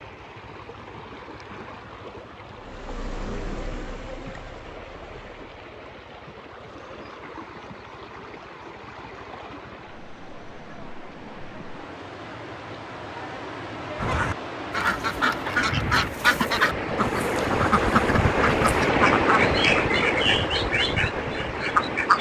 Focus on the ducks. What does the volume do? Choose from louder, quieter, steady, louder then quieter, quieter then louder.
steady.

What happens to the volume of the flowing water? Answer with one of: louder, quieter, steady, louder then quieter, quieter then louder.
louder.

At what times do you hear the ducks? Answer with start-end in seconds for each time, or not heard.
13.9-22.1.